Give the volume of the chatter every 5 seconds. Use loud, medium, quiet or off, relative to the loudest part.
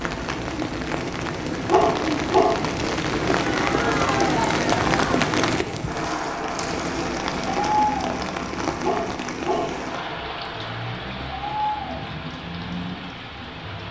loud, loud, medium.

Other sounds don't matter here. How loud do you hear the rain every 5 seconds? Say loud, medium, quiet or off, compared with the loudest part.
loud, loud, medium.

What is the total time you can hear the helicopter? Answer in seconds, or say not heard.
6 s.